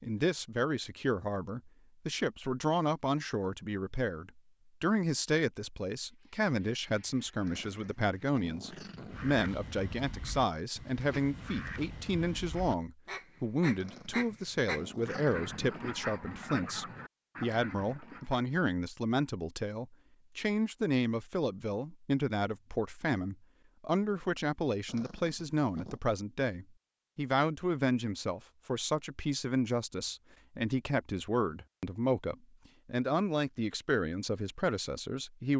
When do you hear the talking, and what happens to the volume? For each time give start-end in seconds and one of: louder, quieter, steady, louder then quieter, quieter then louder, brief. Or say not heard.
0.0-35.5 steady.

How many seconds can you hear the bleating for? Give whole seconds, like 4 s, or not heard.
not heard.